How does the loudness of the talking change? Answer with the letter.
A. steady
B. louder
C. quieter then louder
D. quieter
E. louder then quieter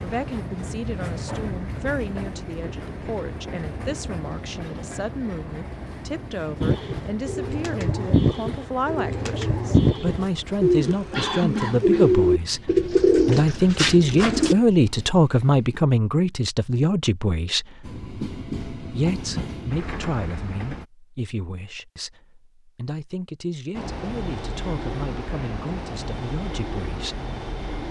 E.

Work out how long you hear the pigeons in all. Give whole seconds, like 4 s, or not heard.
8 s.